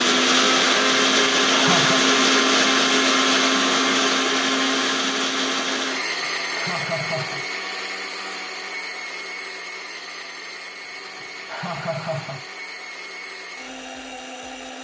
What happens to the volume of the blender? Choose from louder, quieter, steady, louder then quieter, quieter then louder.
quieter.